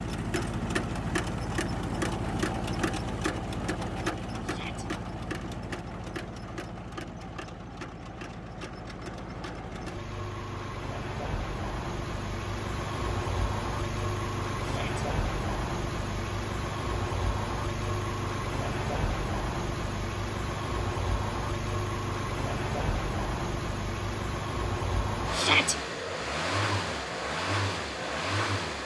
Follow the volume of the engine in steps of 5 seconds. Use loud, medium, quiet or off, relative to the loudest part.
loud, medium, loud, loud, loud, loud.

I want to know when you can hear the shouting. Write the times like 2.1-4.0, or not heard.
4.4-4.8, 14.7-15.1, 25.3-25.8.